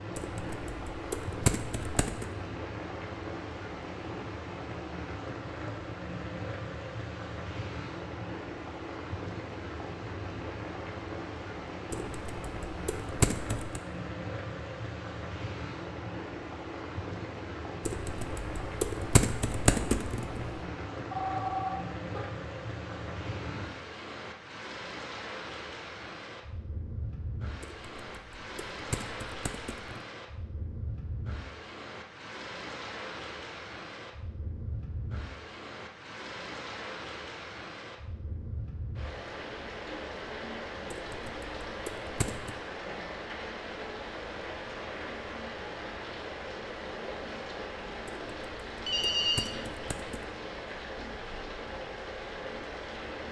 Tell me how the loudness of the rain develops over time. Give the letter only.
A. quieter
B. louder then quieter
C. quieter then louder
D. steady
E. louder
D.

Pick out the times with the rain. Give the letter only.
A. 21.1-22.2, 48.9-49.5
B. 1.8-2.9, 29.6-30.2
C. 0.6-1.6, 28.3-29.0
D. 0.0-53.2
D.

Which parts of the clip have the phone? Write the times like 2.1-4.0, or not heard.
21.1-22.2, 48.9-49.5.